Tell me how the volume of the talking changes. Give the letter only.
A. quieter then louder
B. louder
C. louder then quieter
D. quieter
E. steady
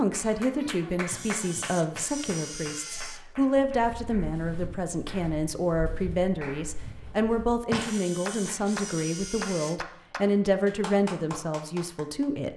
E.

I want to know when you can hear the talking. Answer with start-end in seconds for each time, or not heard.
0.0-12.5.